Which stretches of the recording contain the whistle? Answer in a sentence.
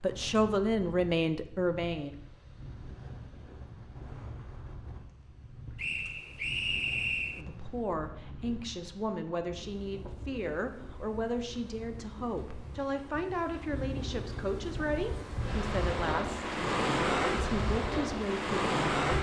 The whistle can be heard from 5.8 to 7.5 s.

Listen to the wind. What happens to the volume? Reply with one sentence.
The volume of the wind goes up.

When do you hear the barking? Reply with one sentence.
You can't hear the barking here.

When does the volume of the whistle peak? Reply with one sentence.
The loudest moment of the whistle is at 7 seconds.